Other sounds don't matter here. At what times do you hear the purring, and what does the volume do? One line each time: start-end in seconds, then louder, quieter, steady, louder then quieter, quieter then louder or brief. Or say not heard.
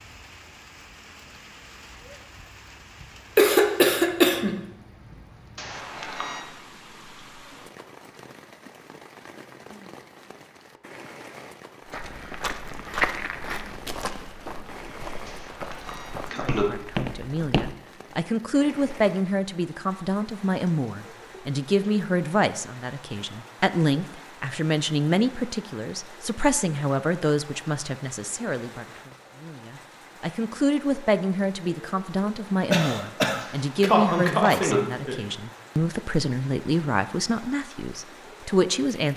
not heard.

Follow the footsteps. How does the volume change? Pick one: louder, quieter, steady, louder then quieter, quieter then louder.
quieter then louder.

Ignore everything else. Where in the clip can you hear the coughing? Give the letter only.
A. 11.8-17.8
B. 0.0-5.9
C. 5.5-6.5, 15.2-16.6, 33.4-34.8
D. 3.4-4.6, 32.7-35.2
D.